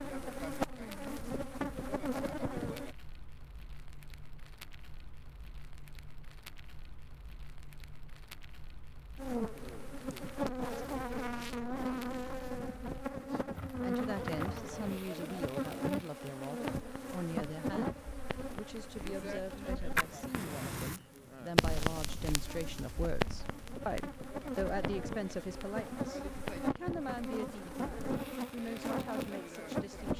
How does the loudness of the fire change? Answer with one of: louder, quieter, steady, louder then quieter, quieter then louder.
louder then quieter.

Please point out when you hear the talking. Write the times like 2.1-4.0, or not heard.
13.8-30.1.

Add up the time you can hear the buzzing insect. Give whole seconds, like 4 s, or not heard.
24 s.